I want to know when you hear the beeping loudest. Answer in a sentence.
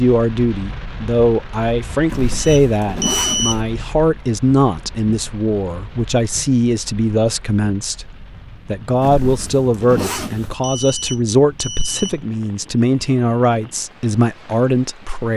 The loudest moment of the beeping is at 3 seconds.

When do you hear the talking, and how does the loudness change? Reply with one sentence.
The talking can be heard from 0.0 to 15.3 s, at a steady volume.